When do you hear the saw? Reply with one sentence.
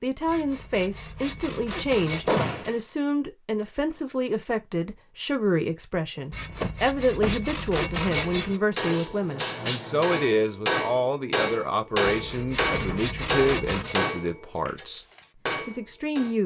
The saw can be heard from 0.2 to 2.5 s, from 6.3 to 8.6 s and from 12.1 to 14.0 s.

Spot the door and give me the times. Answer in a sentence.
You can hear the door from 2.2 to 2.8 s, from 6.6 to 7.5 s and from 12.7 to 13.2 s.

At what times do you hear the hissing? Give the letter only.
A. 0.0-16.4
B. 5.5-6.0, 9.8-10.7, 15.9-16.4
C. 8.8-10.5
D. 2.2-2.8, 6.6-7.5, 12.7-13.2
C.